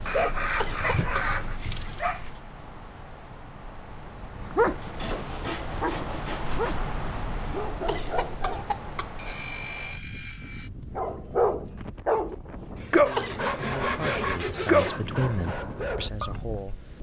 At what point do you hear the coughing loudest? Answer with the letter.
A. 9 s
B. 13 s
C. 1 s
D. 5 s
B.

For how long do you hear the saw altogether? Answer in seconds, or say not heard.
7 s.